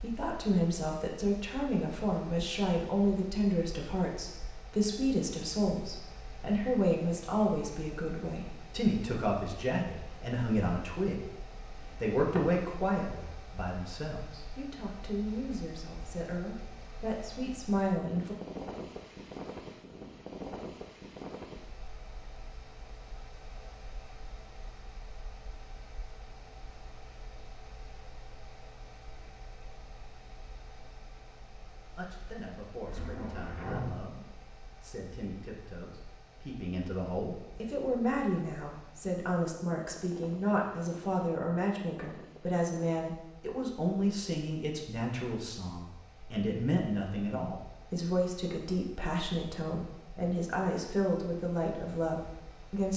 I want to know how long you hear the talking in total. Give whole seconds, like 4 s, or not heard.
39 s.